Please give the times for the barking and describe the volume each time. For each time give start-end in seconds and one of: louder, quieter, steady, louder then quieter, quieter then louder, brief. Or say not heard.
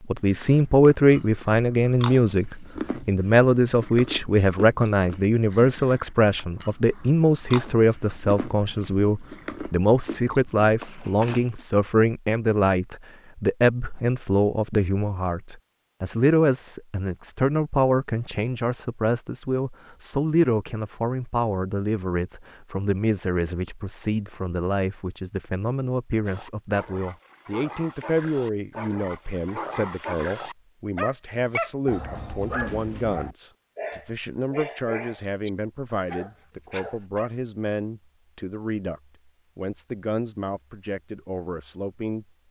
26.2-37.4 louder then quieter.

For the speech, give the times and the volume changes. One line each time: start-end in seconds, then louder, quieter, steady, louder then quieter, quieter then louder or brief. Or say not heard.
0.1-42.2 quieter.